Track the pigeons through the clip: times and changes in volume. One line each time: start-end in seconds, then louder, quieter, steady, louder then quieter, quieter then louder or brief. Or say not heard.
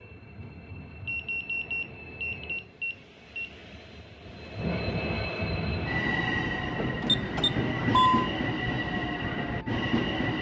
not heard.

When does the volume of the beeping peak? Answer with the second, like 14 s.
8 s.